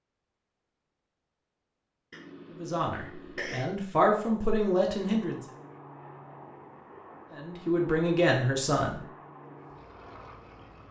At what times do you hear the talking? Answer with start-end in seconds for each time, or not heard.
2.5-5.4, 7.3-9.0.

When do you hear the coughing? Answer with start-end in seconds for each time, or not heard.
2.1-3.6.